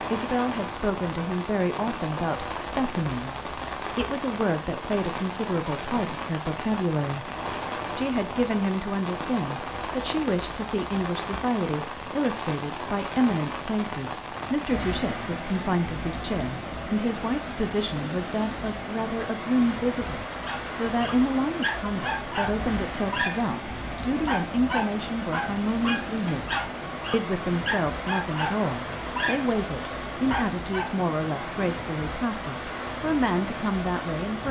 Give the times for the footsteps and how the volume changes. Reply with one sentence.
You can't hear the footsteps here.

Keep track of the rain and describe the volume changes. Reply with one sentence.
The volume of the rain stays about the same.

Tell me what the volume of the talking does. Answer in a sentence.
The volume of the talking stays about the same.